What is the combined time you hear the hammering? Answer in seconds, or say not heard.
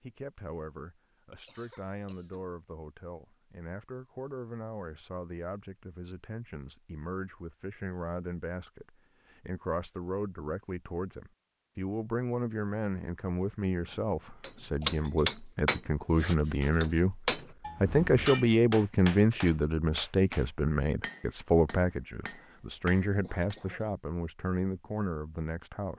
9 s.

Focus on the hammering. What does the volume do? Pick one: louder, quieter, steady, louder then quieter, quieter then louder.
quieter.